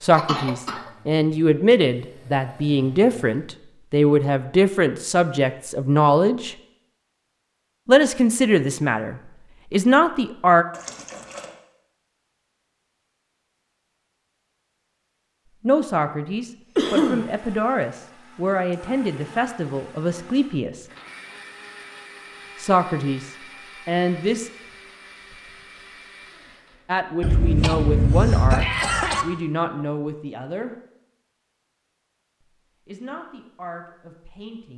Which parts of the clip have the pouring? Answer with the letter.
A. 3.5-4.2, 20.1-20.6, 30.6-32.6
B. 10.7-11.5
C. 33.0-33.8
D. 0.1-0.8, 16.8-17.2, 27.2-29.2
B.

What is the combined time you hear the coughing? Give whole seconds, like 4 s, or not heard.
3 s.